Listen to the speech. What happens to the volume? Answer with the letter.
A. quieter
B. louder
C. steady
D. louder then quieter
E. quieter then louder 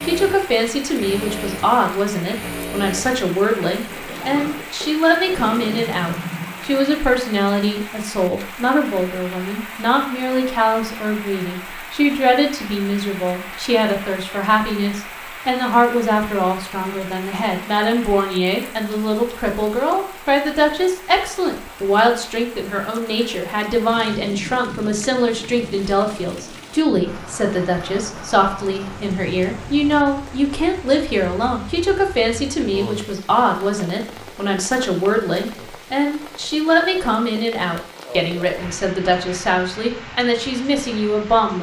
C.